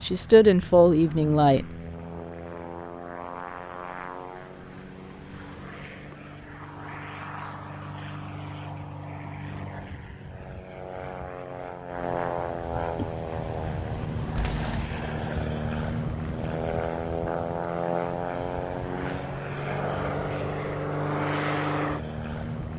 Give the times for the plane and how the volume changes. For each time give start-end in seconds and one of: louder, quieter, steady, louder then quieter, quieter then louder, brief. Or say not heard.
0.0-22.7 louder.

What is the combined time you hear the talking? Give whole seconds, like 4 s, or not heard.
2 s.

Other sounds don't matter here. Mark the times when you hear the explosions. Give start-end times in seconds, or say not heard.
14.3-15.1.